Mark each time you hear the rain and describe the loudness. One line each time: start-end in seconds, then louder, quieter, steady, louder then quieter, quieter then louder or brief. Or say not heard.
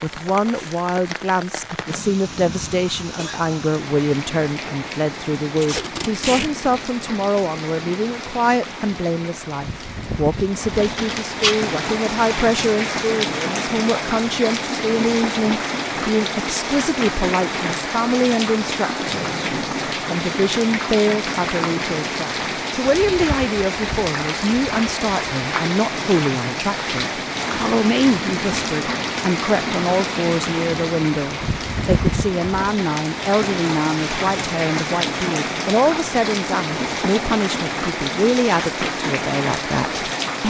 0.0-40.4 louder.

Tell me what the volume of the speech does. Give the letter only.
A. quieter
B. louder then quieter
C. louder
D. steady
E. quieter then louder
D.